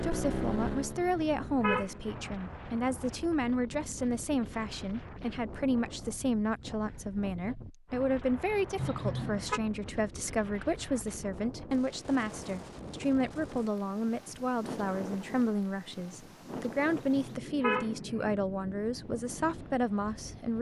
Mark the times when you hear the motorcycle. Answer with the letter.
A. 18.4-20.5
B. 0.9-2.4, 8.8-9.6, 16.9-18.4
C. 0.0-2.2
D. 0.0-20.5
C.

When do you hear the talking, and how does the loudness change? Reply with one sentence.
The talking can be heard from 0.0 to 20.5 s, at a steady volume.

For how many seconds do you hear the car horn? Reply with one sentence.
You can hear the car horn for 4 seconds altogether.